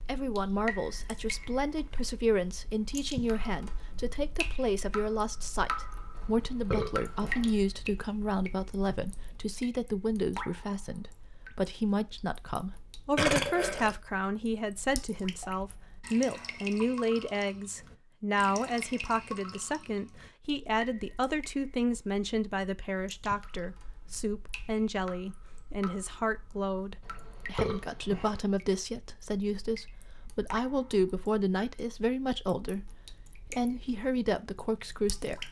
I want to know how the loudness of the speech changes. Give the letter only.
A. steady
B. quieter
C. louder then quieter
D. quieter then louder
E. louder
A.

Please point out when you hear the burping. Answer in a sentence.
The burping can be heard from 6.2 to 7.5 s, from 13.2 to 13.9 s and from 27.0 to 28.4 s.